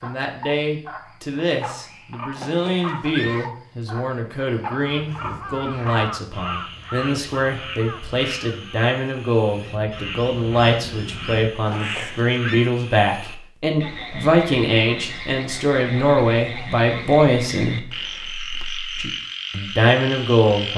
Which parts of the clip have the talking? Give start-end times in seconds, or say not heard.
0.0-20.7.